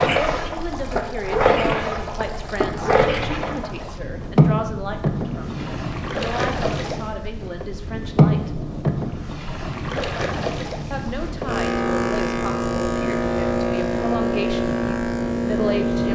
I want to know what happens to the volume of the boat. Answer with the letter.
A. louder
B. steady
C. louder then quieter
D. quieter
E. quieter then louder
B.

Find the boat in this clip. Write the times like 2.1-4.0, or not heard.
0.0-16.1.